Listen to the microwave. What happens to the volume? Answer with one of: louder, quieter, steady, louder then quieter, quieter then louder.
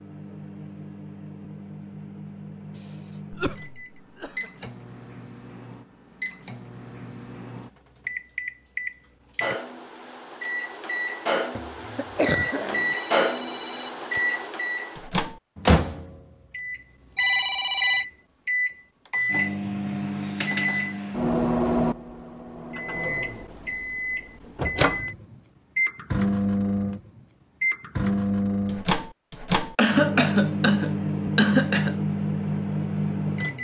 louder.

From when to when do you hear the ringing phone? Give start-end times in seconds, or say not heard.
12.8-14.2, 17.1-18.1.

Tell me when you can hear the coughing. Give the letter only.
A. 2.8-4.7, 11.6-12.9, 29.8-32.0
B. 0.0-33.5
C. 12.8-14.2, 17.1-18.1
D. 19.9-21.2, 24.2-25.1
A.